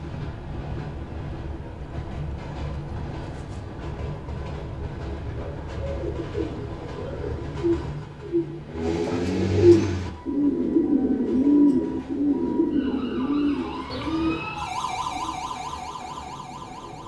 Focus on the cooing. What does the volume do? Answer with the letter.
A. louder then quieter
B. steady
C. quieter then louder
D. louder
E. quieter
A.